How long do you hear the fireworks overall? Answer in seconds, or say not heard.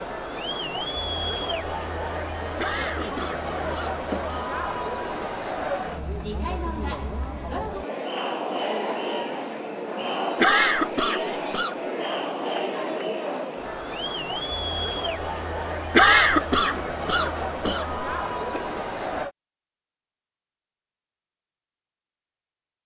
not heard.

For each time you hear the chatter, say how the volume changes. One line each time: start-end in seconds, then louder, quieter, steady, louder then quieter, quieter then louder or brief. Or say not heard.
0.0-19.3 steady.